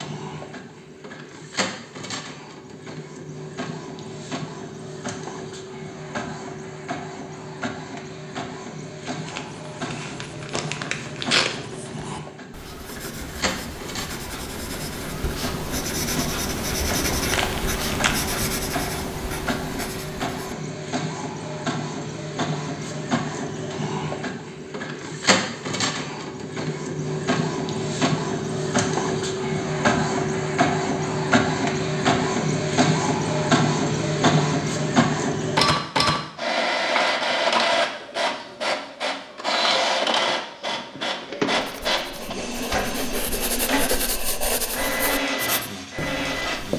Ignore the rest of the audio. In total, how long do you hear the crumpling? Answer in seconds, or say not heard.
5 s.